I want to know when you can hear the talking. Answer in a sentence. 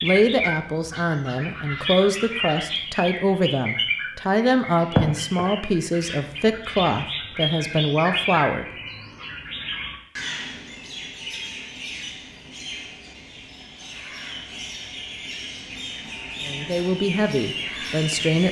The talking can be heard from 0.0 to 8.7 s and from 16.4 to 18.4 s.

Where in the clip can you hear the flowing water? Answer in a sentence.
The flowing water can't be heard in this clip.